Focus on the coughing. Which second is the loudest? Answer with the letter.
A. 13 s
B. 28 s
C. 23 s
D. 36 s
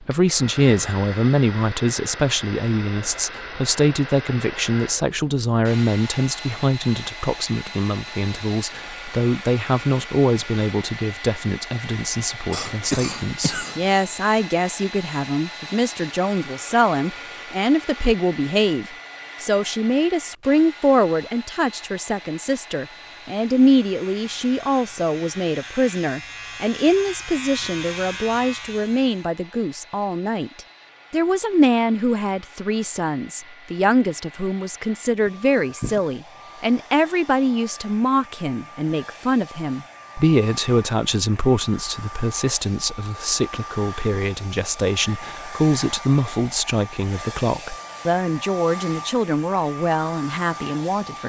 A.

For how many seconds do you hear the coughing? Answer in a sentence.
The coughing can be heard for 2 seconds in total.